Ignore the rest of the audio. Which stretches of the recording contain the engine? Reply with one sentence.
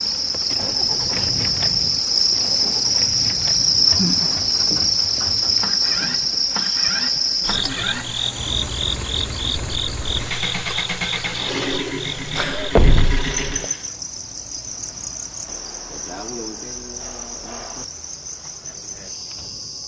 The engine can be heard from 0.2 to 13.9 s.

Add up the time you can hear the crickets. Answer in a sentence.
The crickets can be heard for 20 seconds in total.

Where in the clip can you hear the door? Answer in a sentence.
The door can be heard from 12.8 to 13.7 s.